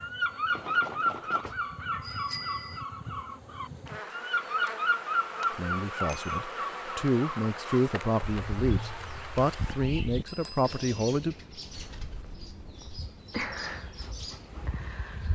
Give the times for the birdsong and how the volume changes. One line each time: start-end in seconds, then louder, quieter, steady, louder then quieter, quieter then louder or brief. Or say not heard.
0.0-15.2 quieter.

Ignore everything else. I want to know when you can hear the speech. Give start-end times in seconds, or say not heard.
5.5-11.3.